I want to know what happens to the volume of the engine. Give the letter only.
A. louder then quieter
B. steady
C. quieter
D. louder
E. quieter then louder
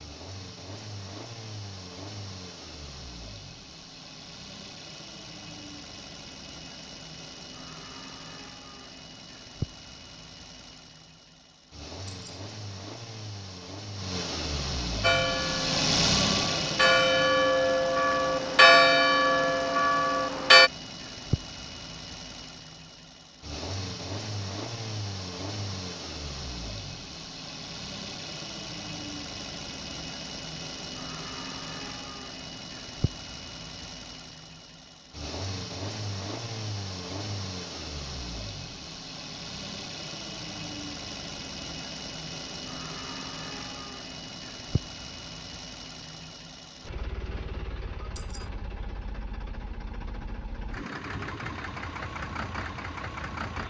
A.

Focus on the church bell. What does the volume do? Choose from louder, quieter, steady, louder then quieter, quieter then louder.
louder then quieter.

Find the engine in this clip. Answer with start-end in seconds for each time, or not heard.
0.0-53.6.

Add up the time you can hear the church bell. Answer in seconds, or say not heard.
6 s.